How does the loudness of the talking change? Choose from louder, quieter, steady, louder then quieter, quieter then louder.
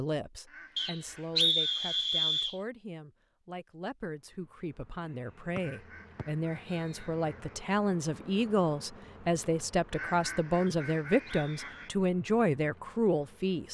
louder.